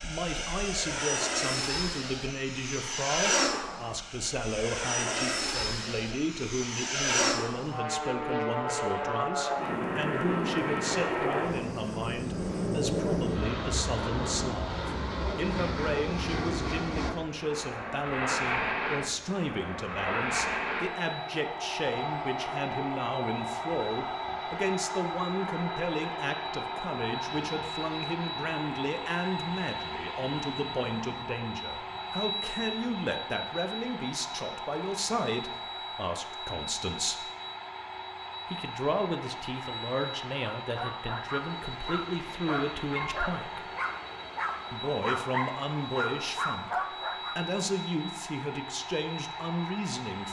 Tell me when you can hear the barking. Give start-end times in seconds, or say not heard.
40.6-47.4.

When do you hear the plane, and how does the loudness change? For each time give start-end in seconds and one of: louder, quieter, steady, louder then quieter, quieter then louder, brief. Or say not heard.
0.0-50.2 quieter.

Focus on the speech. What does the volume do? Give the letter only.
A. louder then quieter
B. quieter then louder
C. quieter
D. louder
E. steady
E.